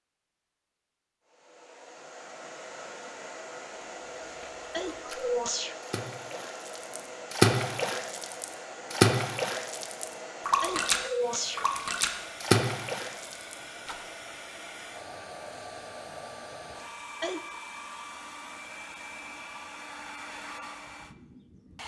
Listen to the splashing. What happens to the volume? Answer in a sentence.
The volume of the splashing goes up.